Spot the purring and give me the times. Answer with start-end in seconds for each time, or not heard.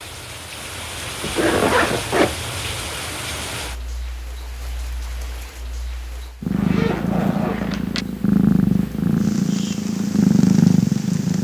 6.4-11.4.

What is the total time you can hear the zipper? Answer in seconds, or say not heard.
3 s.